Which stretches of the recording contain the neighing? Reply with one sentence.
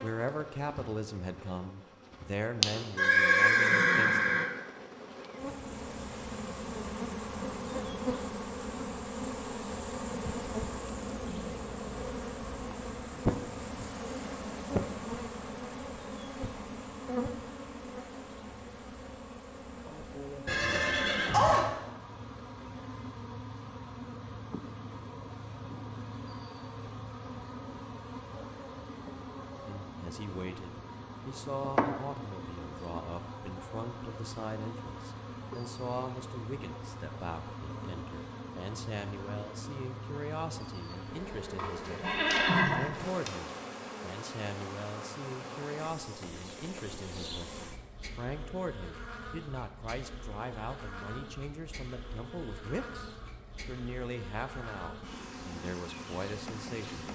The neighing can be heard from 3.0 to 4.5 s, from 20.4 to 21.7 s and from 41.5 to 43.3 s.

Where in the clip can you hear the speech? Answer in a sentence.
The speech can be heard from 0.0 to 4.3 s and from 29.6 to 57.0 s.